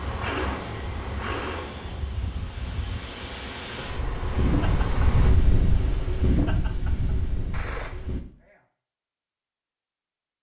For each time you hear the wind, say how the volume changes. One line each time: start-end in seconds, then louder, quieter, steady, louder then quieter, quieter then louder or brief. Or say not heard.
0.0-8.2 louder.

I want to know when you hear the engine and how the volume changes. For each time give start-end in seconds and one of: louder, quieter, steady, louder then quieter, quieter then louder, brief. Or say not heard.
0.0-5.3 quieter then louder.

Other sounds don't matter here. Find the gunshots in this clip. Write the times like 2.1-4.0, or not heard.
7.5-8.6.